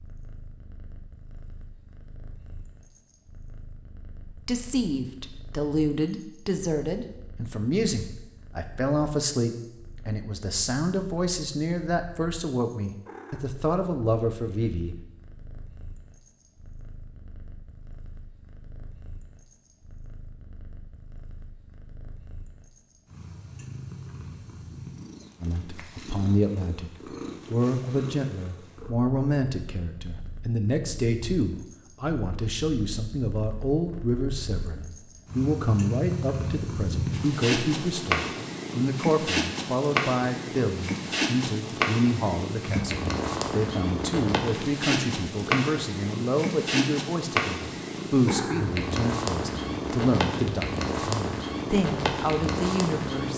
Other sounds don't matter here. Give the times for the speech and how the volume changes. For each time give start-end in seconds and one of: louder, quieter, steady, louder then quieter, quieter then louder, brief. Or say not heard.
4.2-14.9 steady
25.4-53.3 steady.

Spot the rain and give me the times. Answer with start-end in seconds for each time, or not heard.
not heard.